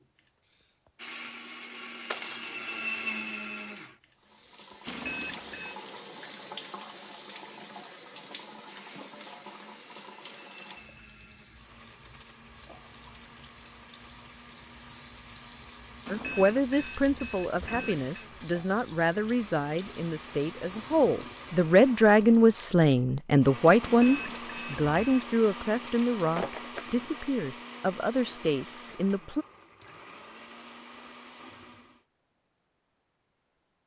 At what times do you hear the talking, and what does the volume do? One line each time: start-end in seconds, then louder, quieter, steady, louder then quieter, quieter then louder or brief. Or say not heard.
16.1-29.4 louder then quieter.